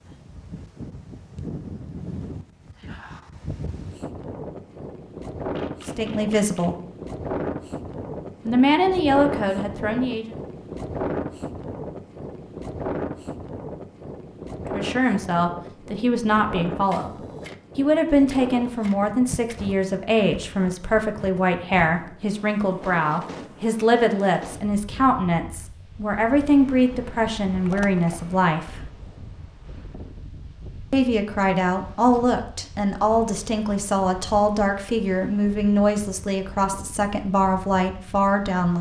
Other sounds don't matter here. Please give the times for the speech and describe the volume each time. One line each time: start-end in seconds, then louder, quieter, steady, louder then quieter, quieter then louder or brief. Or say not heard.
5.8-6.8 brief
8.4-10.3 brief
14.6-17.1 brief
17.8-28.9 steady
30.9-38.7 steady.